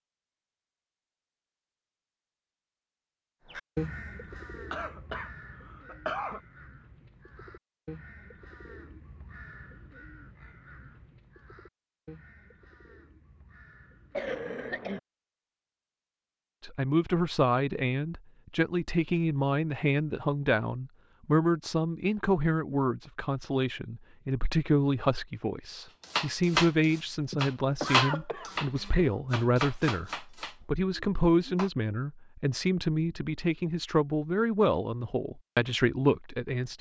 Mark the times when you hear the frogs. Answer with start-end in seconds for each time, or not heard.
not heard.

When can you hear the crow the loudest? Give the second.
4 s.